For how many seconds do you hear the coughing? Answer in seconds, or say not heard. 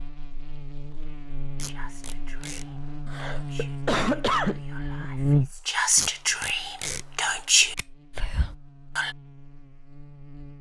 2 s.